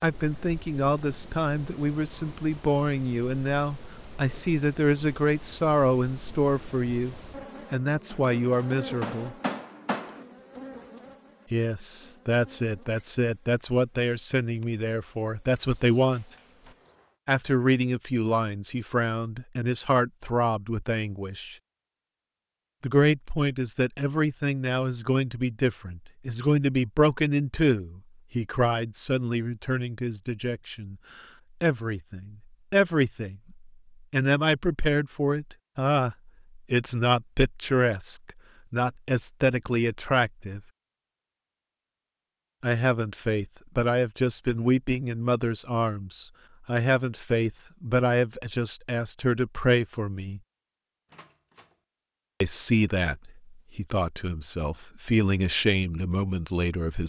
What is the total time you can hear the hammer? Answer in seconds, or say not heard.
2 s.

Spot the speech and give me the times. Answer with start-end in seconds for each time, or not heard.
0.0-9.3, 11.5-16.2, 17.2-21.6, 22.8-40.6, 42.6-50.4, 52.4-57.0.